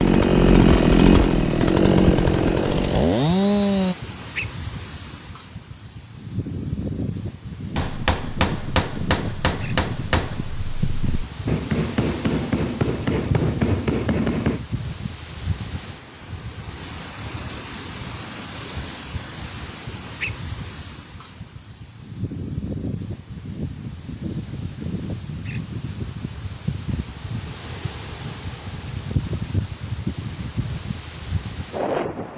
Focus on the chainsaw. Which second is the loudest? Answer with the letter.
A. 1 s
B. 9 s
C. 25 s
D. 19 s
A.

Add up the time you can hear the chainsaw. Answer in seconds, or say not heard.
4 s.